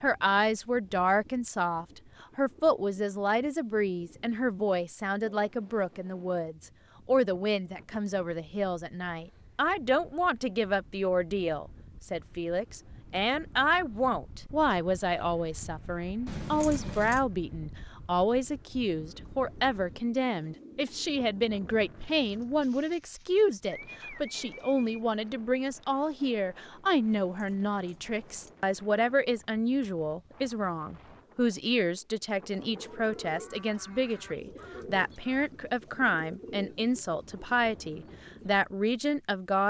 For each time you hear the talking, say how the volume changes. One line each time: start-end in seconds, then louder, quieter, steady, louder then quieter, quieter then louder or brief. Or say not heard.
0.0-39.6 steady.